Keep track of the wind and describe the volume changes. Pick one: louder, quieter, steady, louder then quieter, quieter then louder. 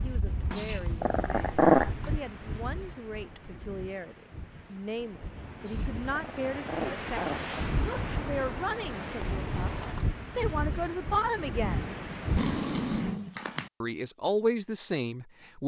quieter then louder.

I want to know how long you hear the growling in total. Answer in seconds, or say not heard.
5 s.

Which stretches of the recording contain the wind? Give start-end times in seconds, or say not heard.
0.0-13.2.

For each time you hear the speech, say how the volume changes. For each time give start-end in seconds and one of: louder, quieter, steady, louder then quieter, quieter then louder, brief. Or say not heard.
0.0-11.9 louder
13.8-15.6 brief.